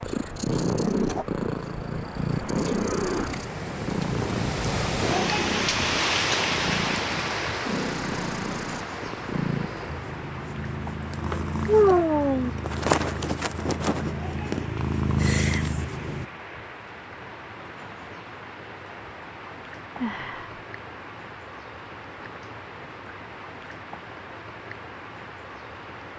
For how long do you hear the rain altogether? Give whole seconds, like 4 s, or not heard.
26 s.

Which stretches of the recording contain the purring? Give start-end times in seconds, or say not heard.
0.0-16.2.